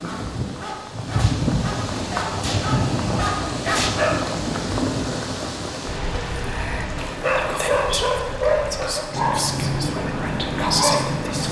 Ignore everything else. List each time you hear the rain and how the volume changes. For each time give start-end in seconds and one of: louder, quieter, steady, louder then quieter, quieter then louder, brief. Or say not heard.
0.0-11.4 quieter.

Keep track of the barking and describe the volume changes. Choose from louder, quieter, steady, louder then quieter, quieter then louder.
louder.